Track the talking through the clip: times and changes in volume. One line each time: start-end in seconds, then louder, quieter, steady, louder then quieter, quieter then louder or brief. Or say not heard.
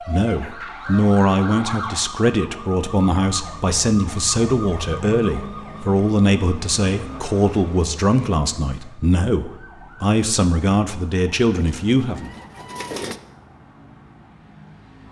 0.1-12.3 steady.